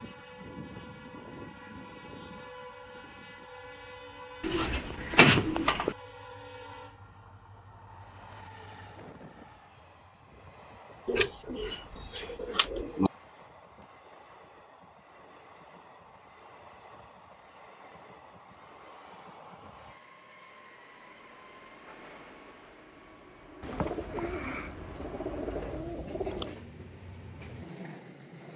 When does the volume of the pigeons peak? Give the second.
5 s.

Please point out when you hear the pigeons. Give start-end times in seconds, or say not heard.
4.4-6.0, 11.1-13.1, 23.6-26.6.